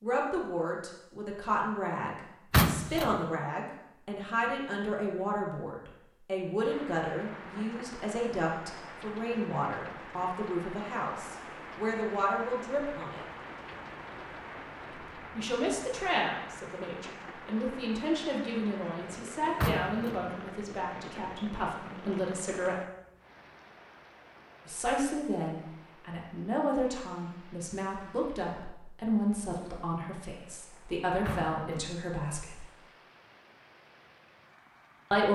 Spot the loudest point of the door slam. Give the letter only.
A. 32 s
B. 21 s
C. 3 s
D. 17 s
C.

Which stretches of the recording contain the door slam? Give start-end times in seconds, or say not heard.
2.5-3.1, 19.6-20.2, 31.2-31.9.